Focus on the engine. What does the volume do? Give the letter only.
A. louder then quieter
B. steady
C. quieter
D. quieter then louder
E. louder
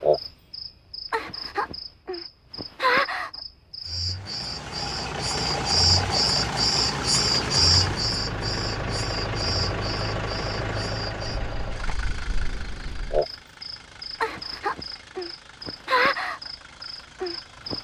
C.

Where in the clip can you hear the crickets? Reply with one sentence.
You can hear the crickets from 0.0 to 17.7 s.